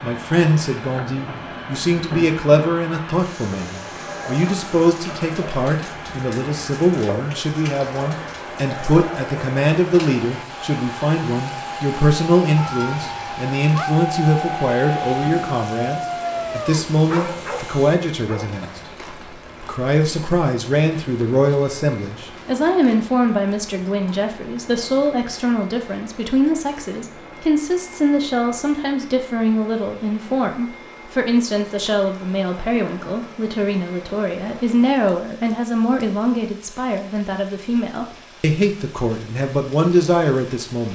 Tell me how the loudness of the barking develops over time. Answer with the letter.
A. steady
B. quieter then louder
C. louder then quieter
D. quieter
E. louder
D.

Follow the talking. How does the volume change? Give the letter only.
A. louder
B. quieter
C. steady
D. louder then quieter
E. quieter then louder
C.